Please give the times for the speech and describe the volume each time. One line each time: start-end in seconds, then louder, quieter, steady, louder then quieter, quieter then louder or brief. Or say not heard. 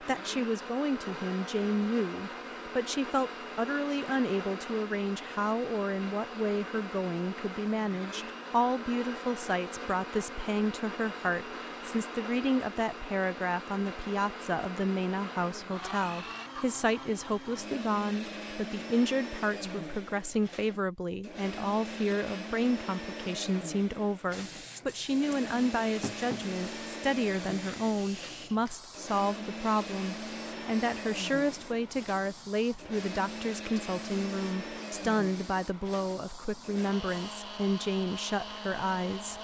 0.1-39.3 steady.